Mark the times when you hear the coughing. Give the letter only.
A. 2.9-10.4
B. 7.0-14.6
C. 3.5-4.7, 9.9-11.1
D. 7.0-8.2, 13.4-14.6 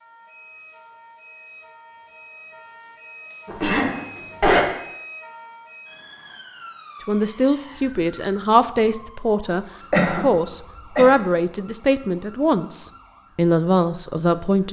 C.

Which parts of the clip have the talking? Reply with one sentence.
You can hear the talking from 7.0 to 14.6 s.